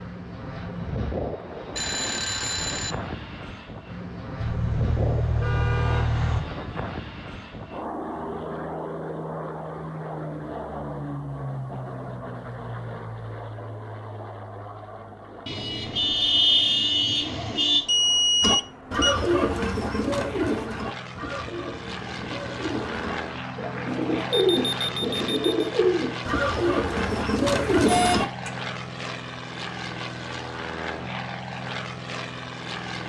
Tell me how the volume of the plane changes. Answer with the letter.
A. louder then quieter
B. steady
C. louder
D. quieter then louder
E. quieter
D.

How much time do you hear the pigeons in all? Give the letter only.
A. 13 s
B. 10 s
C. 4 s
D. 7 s
B.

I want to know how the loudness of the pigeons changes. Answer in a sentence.
The volume of the pigeons goes down, then up.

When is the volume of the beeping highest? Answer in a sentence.
The loudest moment of the beeping is at 18 seconds.